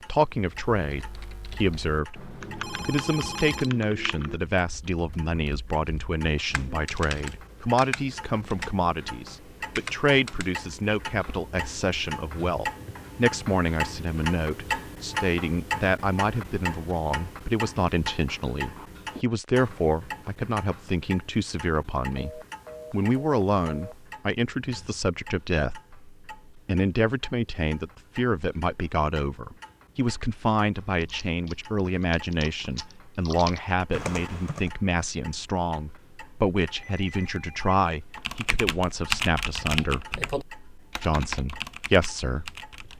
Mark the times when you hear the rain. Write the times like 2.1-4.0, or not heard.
not heard.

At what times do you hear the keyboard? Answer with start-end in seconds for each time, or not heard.
0.5-10.8, 30.9-34.7, 38.1-42.9.